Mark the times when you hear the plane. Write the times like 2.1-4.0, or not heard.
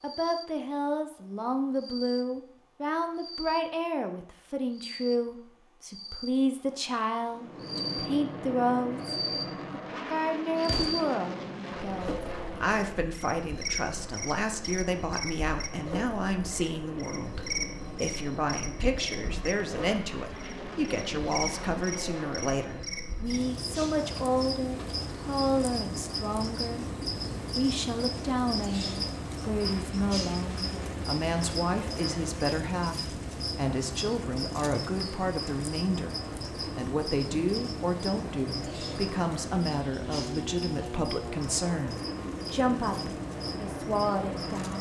7.3-44.7.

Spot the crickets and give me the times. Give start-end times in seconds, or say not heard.
0.0-44.7.